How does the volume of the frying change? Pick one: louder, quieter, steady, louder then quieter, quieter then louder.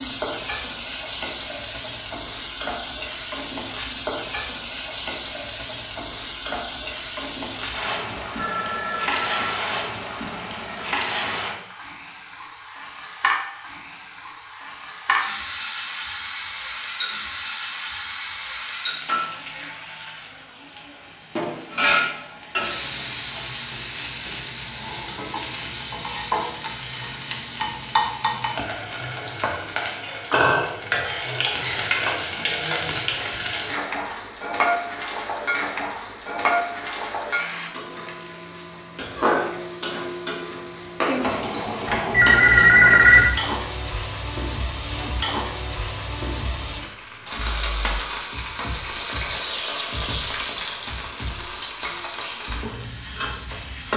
steady.